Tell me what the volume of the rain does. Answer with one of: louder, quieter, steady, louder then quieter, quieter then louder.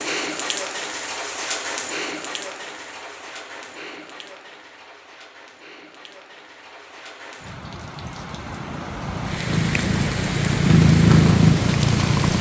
quieter then louder.